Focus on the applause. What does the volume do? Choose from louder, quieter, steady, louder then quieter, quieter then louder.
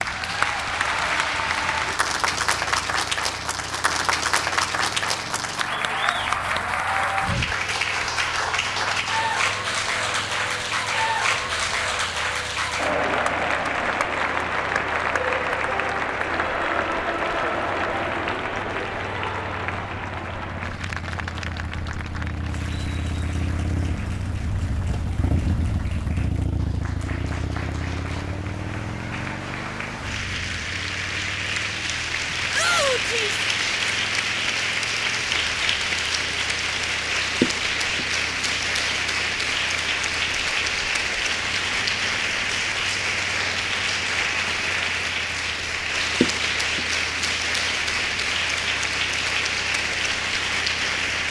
quieter then louder.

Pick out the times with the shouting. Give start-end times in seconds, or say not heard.
32.5-33.4.